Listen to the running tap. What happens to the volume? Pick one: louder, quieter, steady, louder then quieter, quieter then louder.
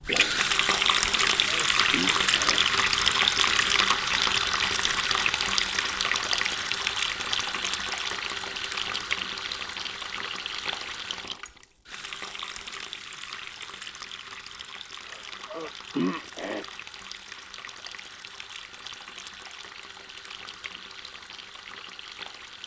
quieter.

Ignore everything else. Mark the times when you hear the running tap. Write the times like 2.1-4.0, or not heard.
0.0-22.6.